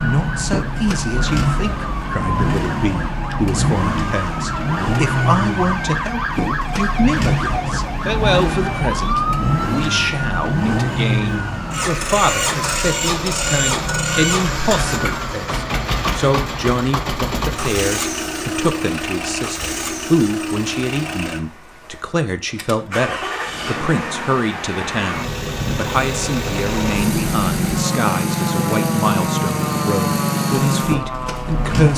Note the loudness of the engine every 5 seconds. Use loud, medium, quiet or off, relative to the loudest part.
loud, loud, loud, loud, medium, loud, loud.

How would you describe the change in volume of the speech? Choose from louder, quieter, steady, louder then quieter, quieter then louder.
steady.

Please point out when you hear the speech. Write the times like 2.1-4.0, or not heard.
0.0-31.9.